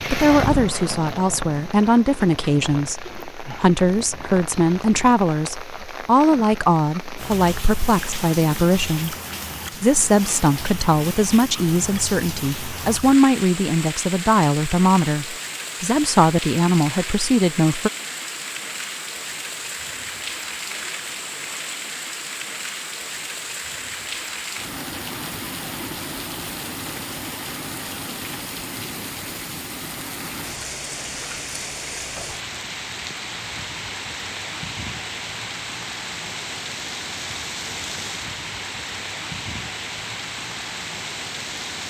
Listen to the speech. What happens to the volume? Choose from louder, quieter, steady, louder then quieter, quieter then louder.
steady.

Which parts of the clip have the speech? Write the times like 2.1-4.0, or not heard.
0.1-9.2, 9.8-17.9.